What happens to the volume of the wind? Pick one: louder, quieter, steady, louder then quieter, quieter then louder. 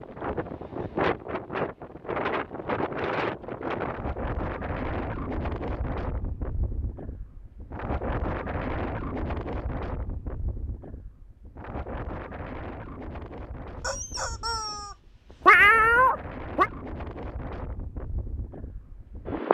quieter.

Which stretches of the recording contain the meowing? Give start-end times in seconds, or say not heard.
15.4-16.7.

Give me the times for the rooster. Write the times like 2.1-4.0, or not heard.
13.8-15.8.